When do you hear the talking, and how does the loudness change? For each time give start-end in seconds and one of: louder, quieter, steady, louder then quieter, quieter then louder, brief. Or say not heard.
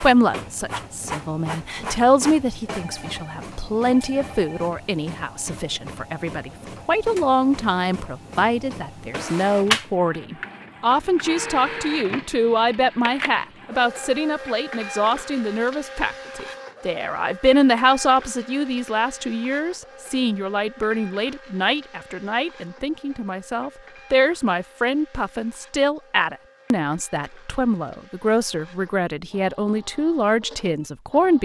0.0-31.4 steady.